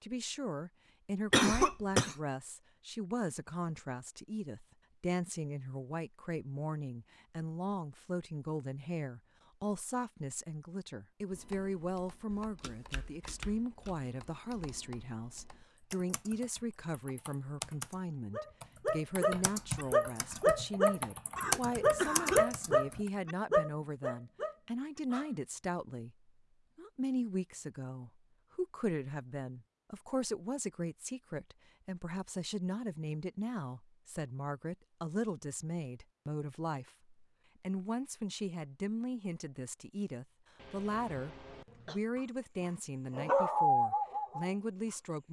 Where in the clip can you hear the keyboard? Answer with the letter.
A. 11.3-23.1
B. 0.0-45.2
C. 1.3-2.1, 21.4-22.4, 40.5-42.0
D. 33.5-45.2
A.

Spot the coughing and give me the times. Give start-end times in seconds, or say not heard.
1.3-2.1, 21.4-22.4, 40.5-42.0.